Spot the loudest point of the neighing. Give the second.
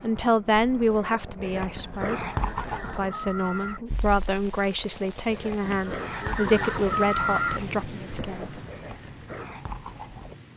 7 s.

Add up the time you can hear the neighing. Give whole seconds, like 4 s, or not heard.
4 s.